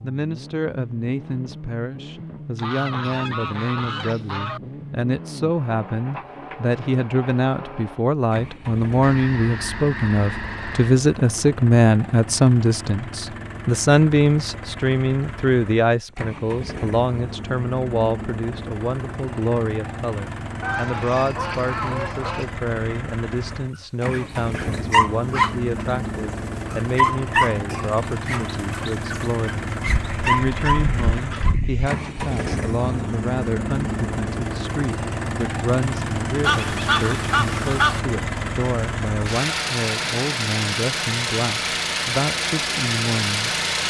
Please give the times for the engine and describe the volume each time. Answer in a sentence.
You can hear the engine from 0.0 to 43.8 s, getting louder.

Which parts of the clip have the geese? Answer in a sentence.
The geese can be heard from 2.5 to 4.6 s, from 9.0 to 10.9 s, from 20.6 to 22.5 s, from 29.9 to 31.9 s and from 36.5 to 38.0 s.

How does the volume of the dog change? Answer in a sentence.
The loudness of the dog goes down, then up.